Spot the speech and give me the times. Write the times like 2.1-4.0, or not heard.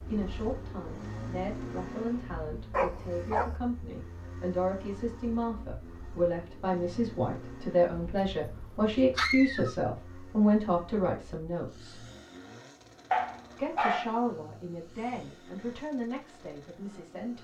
0.0-12.0, 13.6-17.3.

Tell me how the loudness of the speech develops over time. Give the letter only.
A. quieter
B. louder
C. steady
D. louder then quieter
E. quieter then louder
D.